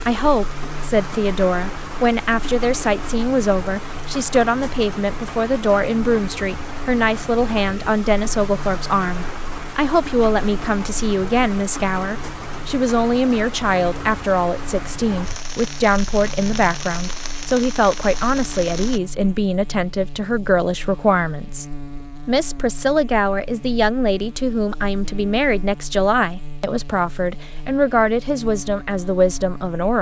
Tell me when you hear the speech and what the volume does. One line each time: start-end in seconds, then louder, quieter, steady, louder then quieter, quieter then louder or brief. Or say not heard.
0.0-29.9 steady.